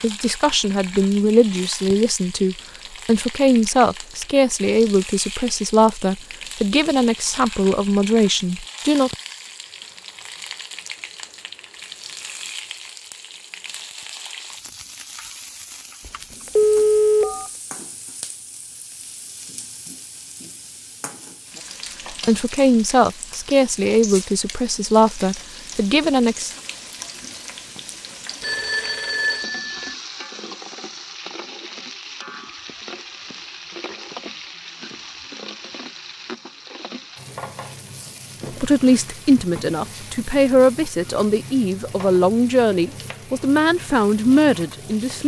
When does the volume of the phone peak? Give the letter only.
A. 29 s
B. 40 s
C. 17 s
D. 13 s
C.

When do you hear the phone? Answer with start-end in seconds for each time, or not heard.
16.1-17.5, 28.4-29.9.